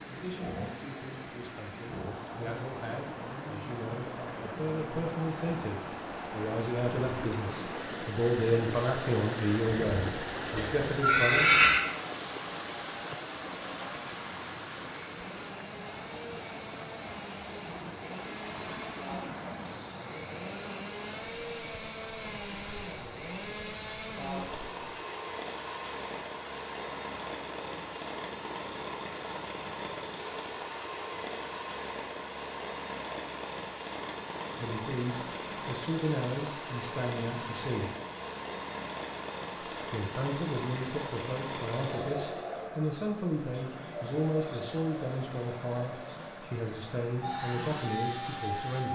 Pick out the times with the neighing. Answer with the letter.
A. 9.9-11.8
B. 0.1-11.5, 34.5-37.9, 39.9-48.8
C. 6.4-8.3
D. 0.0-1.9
A.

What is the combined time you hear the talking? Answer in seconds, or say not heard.
24 s.